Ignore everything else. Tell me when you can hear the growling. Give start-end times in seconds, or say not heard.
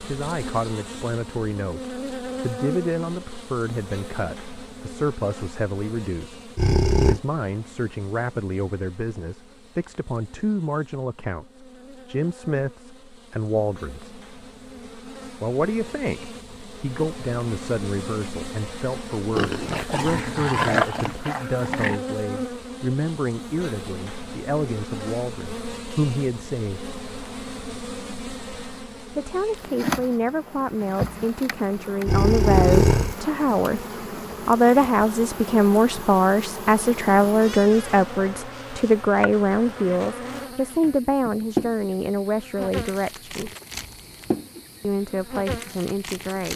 6.5-7.2, 19.4-22.0, 32.0-33.1.